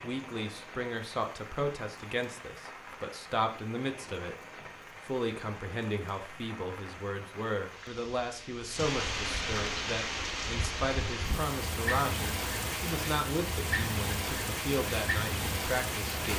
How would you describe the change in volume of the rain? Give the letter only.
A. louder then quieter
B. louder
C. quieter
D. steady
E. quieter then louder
B.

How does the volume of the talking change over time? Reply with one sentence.
The loudness of the talking stays about the same.